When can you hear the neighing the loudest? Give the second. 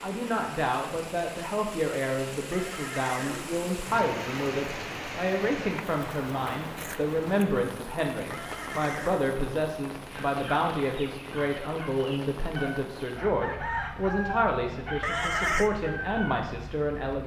15 s.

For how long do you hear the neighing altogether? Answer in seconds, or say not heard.
3 s.